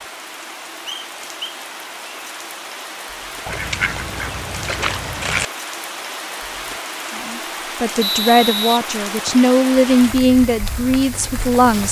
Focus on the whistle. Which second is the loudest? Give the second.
8 s.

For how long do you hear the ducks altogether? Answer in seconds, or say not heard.
2 s.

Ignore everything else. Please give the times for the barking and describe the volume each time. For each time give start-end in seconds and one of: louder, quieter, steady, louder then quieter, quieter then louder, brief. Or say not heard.
not heard.